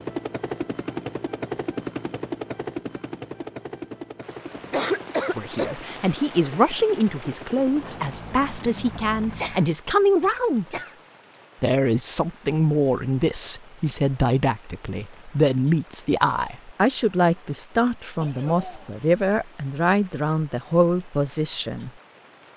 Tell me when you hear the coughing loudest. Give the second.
5 s.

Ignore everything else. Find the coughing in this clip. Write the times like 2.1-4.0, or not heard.
4.5-5.8, 9.3-11.0, 18.2-18.9.